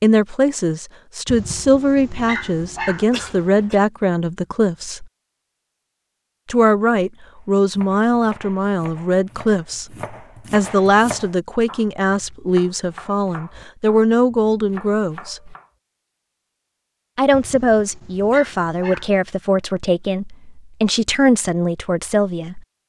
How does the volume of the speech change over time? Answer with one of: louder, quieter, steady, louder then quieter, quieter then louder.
steady.